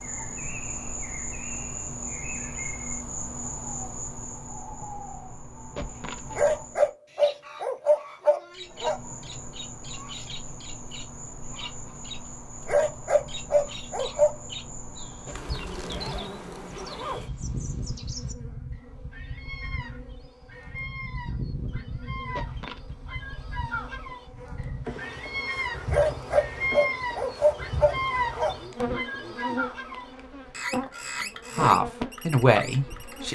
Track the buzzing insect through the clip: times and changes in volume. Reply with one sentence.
The buzzing insect can be heard from 0.0 to 6.9 s, getting quieter; and from 8.6 to 33.3 s, getting louder.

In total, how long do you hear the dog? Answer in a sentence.
You can hear the dog for 7 seconds altogether.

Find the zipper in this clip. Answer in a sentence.
You can hear the zipper from 5.8 to 6.4 s, from 15.2 to 17.2 s and from 22.4 to 22.9 s.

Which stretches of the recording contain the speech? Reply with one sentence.
The speech can be heard from 31.6 to 33.3 s.